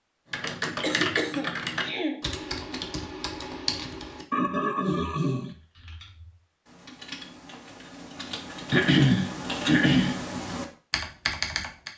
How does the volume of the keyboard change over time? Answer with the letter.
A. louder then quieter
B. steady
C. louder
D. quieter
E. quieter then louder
E.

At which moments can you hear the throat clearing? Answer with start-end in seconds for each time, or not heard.
0.8-2.2, 4.3-5.5, 8.7-10.2.